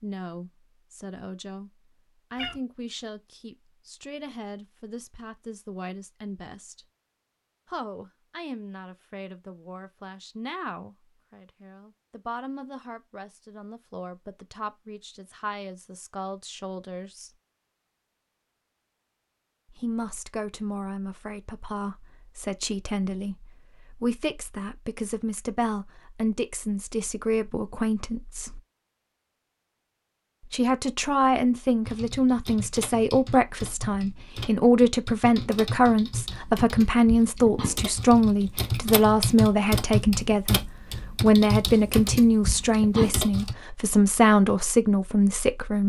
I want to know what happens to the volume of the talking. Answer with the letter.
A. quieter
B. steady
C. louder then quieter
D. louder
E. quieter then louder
D.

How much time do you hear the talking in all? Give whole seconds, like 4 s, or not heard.
41 s.